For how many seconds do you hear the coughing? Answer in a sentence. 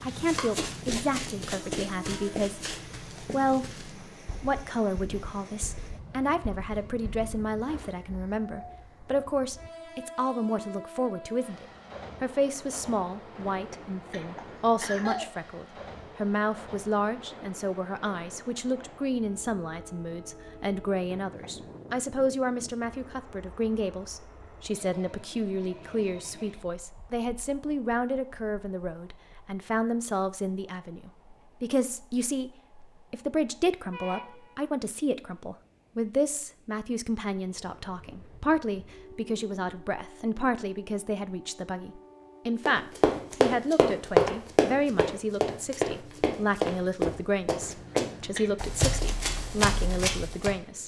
You can hear the coughing for 4 seconds altogether.